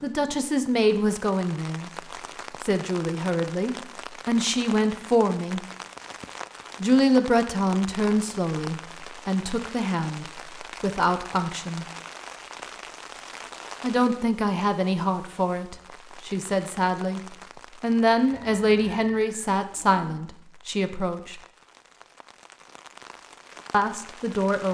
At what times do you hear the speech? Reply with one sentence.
The speech can be heard from 0.0 to 1.9 s, from 2.6 to 5.6 s, from 6.8 to 11.8 s, from 13.8 to 17.2 s, from 17.8 to 21.4 s and from 23.7 to 24.6 s.